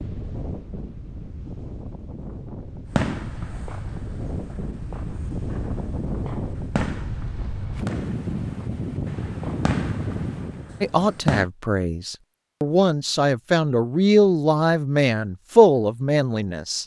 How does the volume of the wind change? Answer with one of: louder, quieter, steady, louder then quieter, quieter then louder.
louder.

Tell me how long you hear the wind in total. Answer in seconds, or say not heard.
11 s.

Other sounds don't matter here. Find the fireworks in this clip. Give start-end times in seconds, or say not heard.
2.9-11.5.